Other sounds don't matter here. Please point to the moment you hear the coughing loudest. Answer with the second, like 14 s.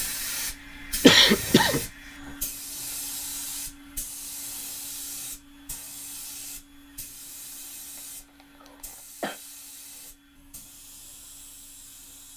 1 s.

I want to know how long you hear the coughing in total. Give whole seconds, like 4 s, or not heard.
2 s.